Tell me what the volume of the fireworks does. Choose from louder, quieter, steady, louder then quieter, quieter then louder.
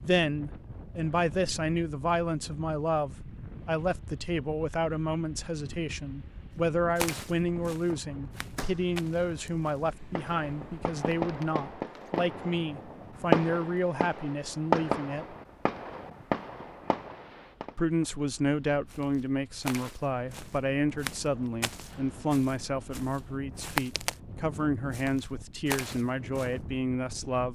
louder then quieter.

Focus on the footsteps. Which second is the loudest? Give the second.
24 s.